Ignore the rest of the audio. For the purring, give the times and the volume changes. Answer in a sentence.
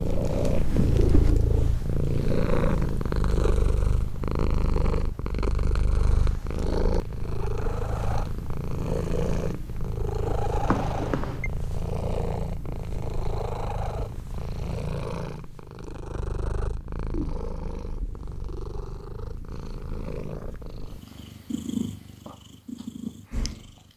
You can hear the purring from 0.0 to 23.9 s, getting quieter.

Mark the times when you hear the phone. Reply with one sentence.
The phone can be heard from 10.7 to 11.5 s.